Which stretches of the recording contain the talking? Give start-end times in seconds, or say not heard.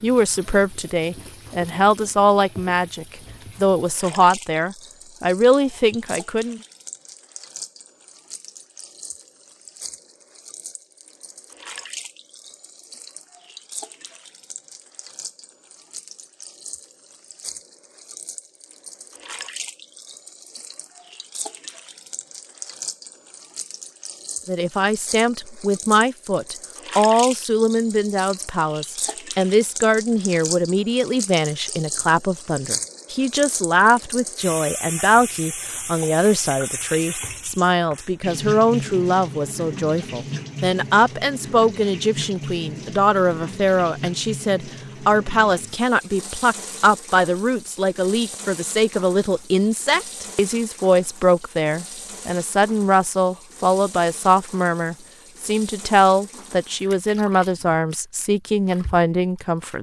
0.0-6.6, 24.4-59.7.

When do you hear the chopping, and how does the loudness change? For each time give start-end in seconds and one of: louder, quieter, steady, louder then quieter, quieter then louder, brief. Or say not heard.
not heard.